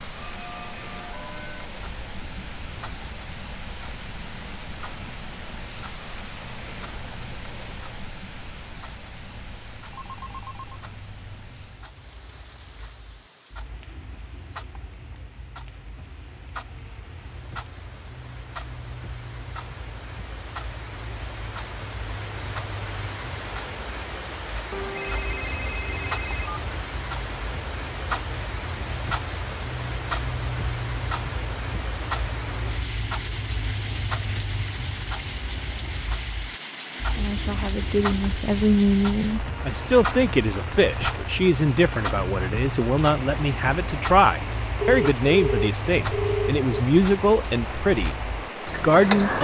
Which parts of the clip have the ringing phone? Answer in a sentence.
You can hear the ringing phone from 9.9 to 10.8 s, from 24.7 to 26.5 s and from 44.8 to 46.8 s.